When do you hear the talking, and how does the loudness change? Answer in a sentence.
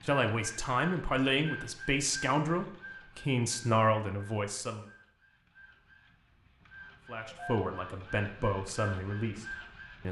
You can hear the talking from 0.1 to 4.8 s, at a steady volume; and briefly from 7.0 to 10.0 s.